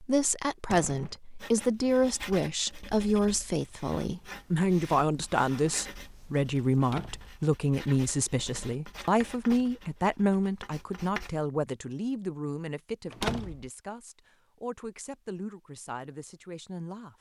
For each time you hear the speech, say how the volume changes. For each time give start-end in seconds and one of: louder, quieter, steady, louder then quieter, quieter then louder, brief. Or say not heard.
0.0-17.1 quieter.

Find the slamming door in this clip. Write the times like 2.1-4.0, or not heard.
0.7-1.2, 6.8-7.4, 13.1-13.7.